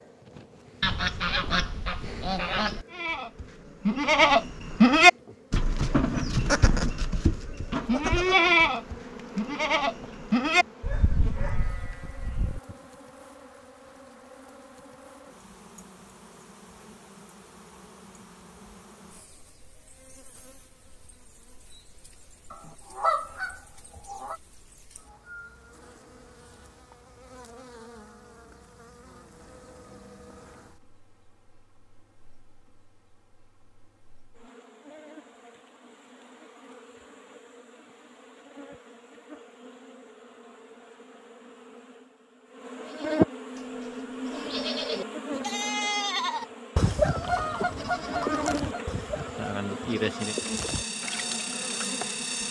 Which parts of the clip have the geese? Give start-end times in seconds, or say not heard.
0.8-2.9, 22.5-24.4, 47.2-48.8.